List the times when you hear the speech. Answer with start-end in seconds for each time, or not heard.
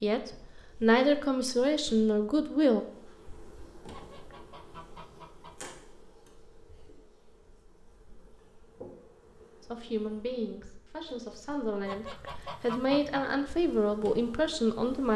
0.0-2.9, 9.6-15.1.